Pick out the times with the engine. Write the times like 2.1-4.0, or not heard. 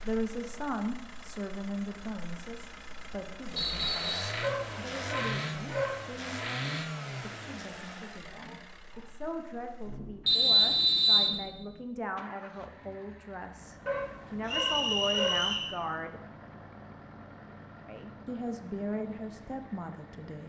0.0-20.4.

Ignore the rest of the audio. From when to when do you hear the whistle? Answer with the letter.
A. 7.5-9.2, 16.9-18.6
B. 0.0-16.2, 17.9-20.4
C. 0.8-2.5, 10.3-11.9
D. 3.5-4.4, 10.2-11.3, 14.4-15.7
D.